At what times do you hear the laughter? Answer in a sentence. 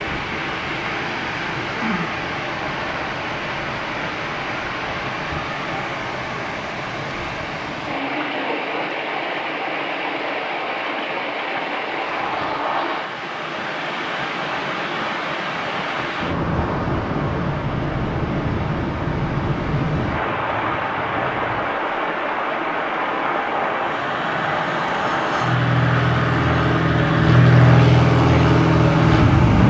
The laughter can't be heard in this clip.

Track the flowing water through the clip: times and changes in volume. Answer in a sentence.
The flowing water can be heard from 0.0 to 29.6 s, at a steady volume.